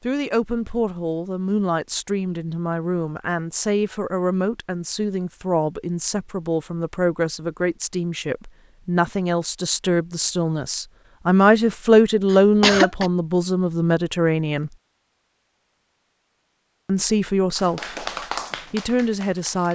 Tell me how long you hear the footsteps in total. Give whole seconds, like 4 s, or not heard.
not heard.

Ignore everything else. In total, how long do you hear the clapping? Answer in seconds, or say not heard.
2 s.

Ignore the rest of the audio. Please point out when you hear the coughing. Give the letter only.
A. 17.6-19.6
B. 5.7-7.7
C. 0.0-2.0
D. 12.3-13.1
D.